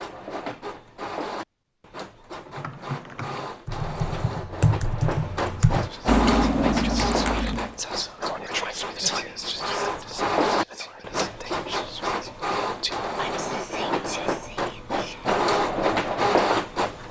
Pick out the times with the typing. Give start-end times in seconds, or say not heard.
2.5-7.8.